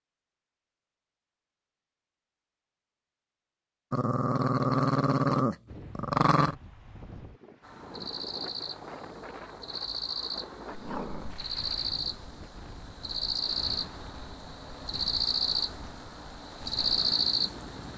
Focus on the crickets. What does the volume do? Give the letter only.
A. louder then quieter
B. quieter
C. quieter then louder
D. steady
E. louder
E.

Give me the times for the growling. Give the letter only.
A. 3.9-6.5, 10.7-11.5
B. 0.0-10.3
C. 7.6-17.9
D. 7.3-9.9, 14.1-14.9
A.